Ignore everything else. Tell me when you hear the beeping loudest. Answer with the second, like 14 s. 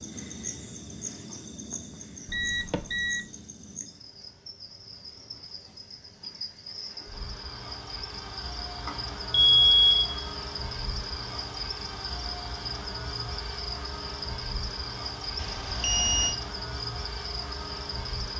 10 s.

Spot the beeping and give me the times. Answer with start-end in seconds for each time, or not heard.
2.2-3.2, 8.8-10.3, 15.3-16.4.